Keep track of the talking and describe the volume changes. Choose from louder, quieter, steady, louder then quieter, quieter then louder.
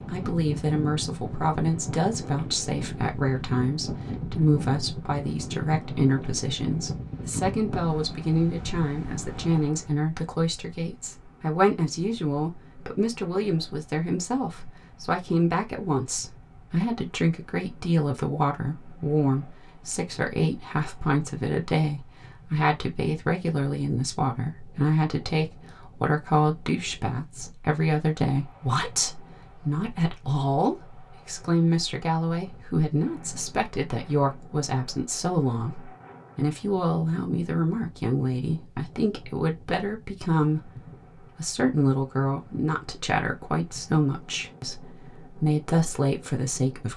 steady.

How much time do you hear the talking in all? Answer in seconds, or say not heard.
46 s.